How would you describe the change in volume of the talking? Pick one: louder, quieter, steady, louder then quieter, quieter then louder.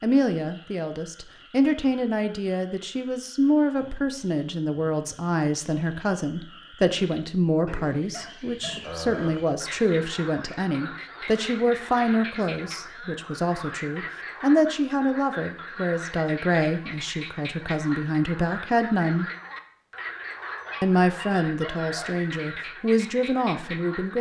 steady.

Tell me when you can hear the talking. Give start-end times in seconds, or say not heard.
0.0-19.2, 20.8-24.1.